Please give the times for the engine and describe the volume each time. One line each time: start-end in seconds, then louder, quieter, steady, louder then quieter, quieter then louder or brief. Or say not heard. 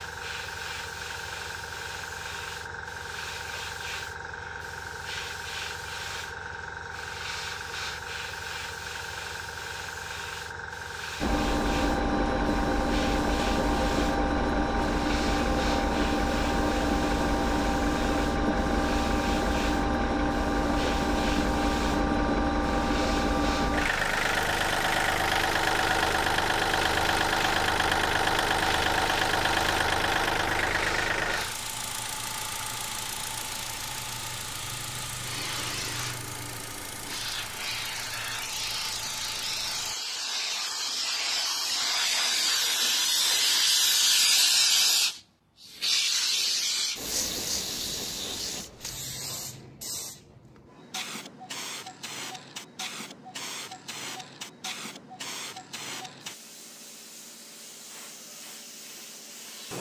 11.2-40.0 quieter.